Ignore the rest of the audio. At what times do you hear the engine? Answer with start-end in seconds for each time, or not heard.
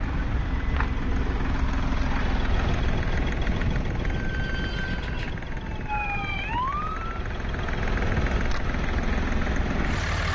0.0-10.3.